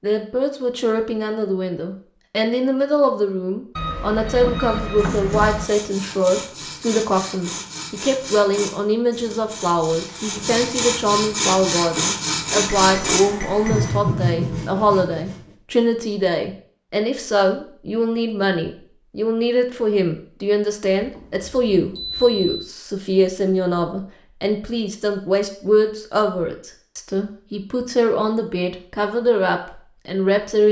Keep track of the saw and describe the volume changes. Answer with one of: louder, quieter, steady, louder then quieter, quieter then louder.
louder.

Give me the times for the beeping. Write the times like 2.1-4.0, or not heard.
3.8-5.7, 12.7-14.0, 21.0-22.6.